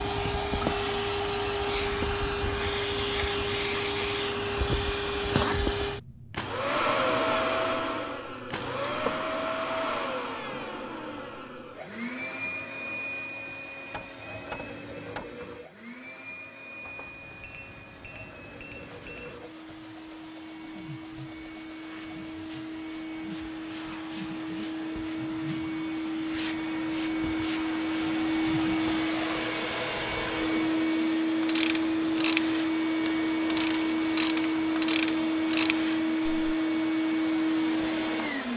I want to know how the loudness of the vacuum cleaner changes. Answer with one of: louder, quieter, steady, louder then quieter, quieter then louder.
quieter then louder.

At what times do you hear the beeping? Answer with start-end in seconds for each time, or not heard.
16.8-19.4.